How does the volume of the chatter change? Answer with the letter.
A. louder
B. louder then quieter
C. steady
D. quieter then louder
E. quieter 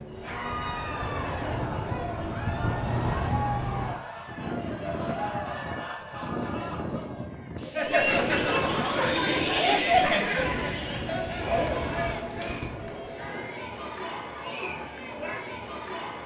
B.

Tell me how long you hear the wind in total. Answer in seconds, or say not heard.
13 s.